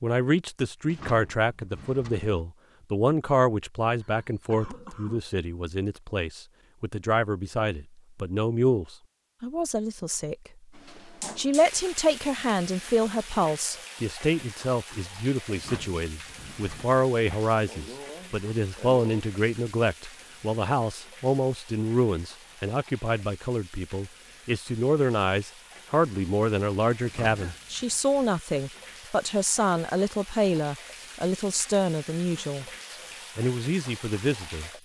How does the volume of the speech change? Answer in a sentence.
The volume of the speech stays about the same.